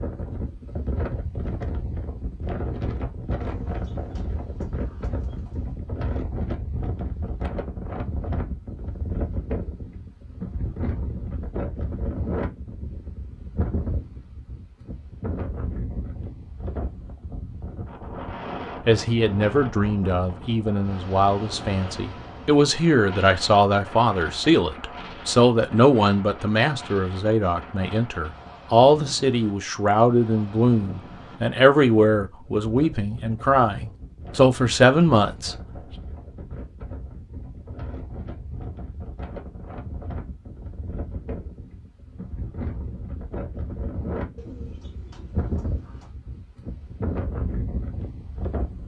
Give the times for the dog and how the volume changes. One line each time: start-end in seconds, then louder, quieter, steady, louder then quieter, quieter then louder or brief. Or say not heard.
not heard.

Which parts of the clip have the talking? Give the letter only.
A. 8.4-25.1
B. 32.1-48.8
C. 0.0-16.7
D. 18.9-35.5
D.